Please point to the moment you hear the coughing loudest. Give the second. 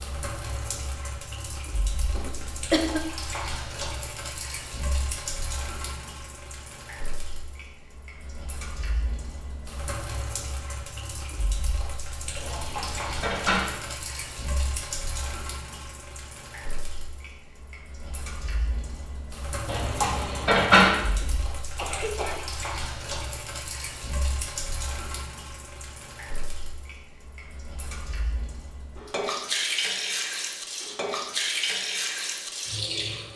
3 s.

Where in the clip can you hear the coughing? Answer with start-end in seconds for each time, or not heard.
2.1-3.0, 21.2-22.4.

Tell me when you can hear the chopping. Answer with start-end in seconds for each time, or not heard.
not heard.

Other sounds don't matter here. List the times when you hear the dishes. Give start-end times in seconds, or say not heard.
12.4-13.7, 19.6-20.9.